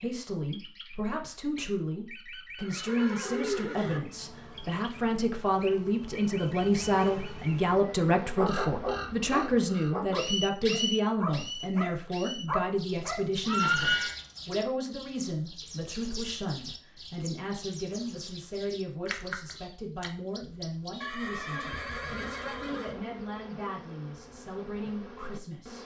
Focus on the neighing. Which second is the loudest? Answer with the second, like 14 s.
14 s.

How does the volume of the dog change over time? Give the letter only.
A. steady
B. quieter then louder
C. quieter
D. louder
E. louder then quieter
B.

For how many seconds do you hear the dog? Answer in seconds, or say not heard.
5 s.